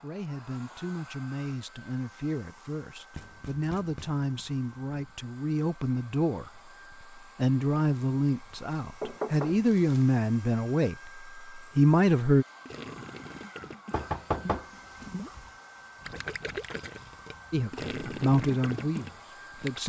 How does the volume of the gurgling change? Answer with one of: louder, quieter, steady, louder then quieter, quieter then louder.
louder.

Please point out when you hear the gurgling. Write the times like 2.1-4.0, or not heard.
12.7-19.8.